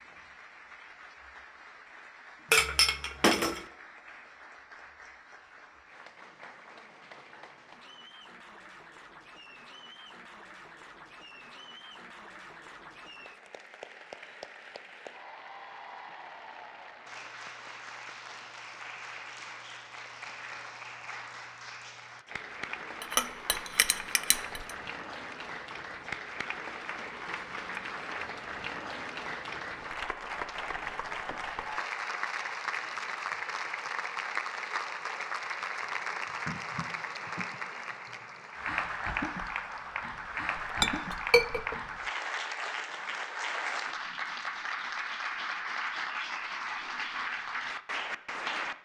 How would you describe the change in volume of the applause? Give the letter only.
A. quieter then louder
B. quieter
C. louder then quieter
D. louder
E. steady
D.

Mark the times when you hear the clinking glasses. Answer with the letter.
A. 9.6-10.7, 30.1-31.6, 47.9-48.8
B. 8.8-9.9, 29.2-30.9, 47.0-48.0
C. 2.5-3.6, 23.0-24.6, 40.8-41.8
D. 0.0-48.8
C.